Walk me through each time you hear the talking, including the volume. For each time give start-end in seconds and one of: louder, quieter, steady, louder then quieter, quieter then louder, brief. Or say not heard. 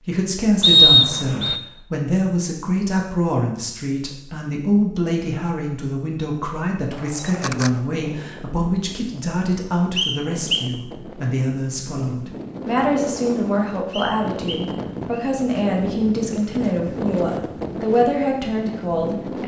0.1-19.4 steady.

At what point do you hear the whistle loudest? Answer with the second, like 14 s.
1 s.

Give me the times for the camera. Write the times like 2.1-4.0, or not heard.
6.9-7.8.